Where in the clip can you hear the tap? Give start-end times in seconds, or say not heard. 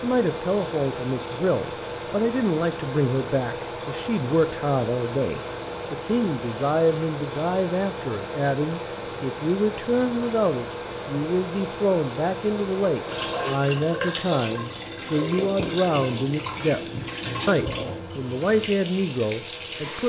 13.1-20.0.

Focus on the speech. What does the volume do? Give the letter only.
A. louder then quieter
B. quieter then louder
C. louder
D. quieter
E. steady
E.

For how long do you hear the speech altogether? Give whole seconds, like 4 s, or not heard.
20 s.